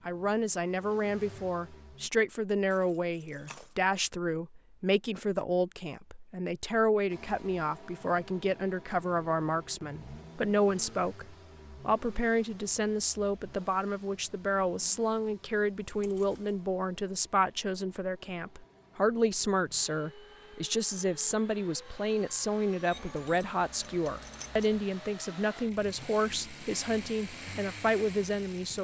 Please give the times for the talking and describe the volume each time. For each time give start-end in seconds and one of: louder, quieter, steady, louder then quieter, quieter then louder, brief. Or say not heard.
0.1-28.8 steady.